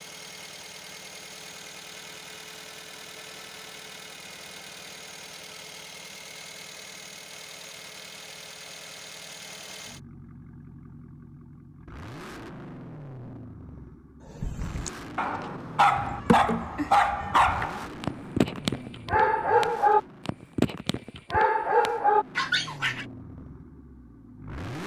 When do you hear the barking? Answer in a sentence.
The barking can be heard from 14.3 to 23.1 s.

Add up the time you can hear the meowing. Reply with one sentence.
You can hear the meowing for 2 seconds altogether.